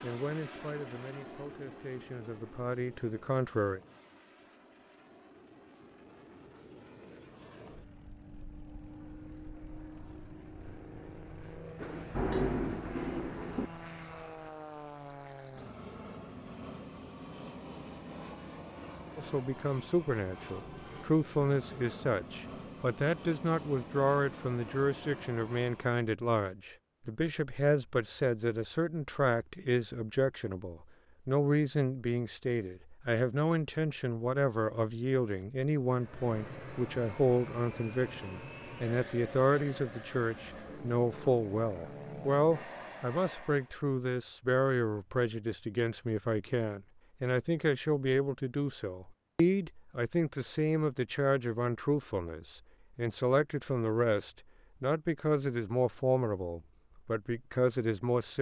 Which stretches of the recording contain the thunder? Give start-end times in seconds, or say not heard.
11.8-13.7.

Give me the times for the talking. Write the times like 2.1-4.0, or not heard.
0.0-3.8, 19.1-58.3.